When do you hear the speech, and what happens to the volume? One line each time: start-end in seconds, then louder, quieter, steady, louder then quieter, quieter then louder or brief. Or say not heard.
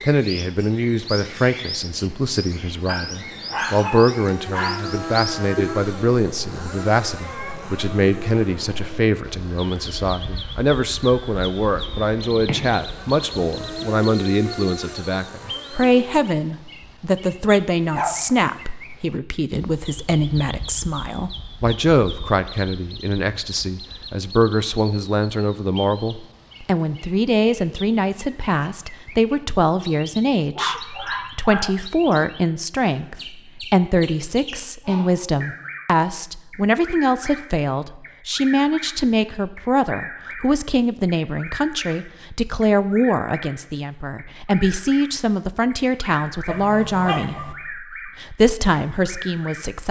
0.0-49.8 steady.